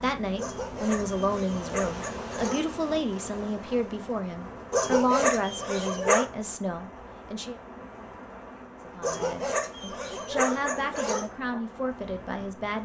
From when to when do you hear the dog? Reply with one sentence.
The dog can be heard from 0.3 to 2.7 s, from 4.7 to 6.2 s and from 9.0 to 11.3 s.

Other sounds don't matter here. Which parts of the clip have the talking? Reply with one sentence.
The talking can be heard from 0.0 to 7.6 s and from 8.8 to 12.8 s.